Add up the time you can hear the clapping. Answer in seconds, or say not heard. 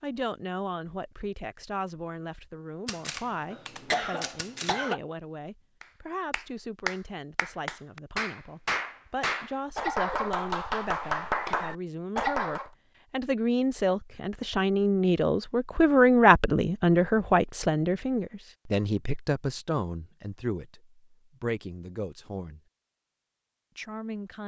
7 s.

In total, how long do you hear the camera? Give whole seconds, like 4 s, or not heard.
2 s.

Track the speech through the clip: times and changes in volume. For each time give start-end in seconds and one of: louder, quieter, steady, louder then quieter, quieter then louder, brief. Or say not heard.
0.0-22.6 louder then quieter
23.8-24.4 brief.